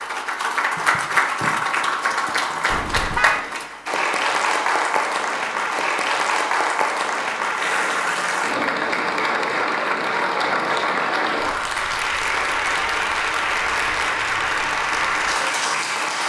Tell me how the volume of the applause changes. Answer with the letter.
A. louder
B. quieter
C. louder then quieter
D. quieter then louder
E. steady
E.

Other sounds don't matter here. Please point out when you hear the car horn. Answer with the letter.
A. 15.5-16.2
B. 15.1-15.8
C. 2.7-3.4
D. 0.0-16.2
C.